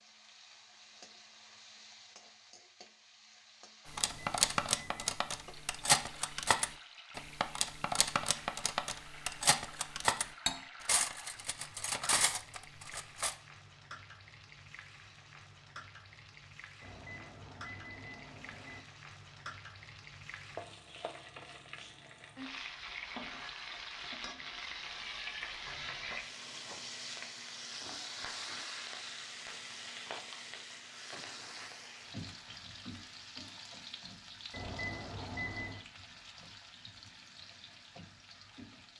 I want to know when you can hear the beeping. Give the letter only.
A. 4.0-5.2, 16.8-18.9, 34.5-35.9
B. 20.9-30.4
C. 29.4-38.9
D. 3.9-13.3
A.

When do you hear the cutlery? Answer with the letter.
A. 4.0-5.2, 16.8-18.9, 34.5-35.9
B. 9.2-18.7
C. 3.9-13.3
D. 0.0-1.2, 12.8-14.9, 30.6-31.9
C.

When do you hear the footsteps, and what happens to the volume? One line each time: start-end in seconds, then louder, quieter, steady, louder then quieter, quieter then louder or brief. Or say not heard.
not heard.